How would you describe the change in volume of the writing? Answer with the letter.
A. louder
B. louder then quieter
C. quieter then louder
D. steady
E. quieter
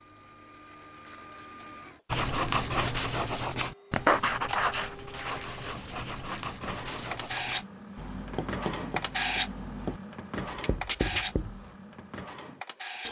E.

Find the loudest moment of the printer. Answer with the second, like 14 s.
9 s.